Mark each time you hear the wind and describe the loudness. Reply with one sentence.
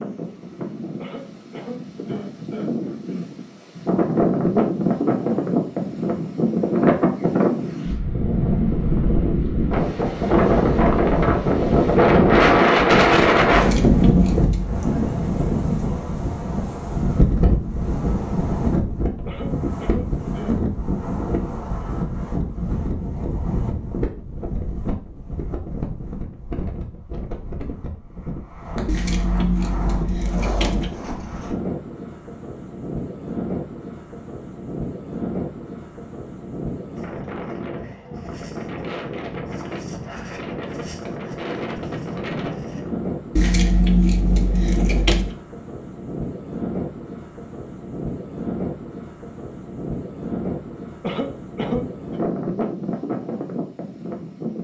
You can hear the wind from 0.0 to 54.5 s, getting quieter.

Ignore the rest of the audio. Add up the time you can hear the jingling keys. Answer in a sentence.
The jingling keys can be heard for 5 seconds in total.